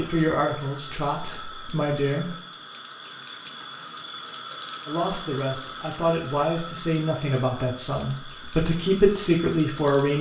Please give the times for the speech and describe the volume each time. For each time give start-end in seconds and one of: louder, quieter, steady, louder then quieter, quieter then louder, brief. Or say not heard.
0.0-2.2 brief
4.8-10.1 louder.